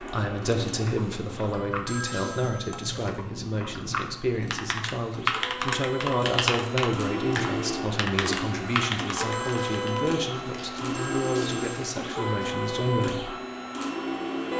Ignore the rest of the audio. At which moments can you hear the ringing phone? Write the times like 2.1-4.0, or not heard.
1.9-3.0, 9.3-11.9.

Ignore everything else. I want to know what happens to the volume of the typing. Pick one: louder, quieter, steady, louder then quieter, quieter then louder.
louder.